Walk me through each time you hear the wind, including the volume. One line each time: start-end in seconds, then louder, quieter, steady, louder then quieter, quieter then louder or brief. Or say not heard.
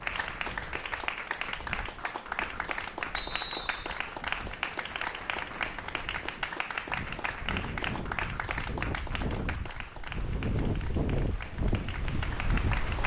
0.0-13.0 louder.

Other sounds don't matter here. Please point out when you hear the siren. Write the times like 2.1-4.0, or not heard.
not heard.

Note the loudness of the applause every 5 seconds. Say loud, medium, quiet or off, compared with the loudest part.
loud, loud, medium.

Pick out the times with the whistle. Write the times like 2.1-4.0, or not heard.
3.1-4.0.